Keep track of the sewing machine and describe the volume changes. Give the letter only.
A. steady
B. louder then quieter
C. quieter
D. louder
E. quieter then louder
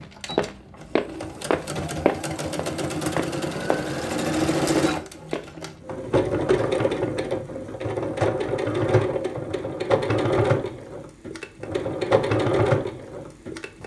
D.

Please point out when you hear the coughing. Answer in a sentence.
The coughing can't be heard in this clip.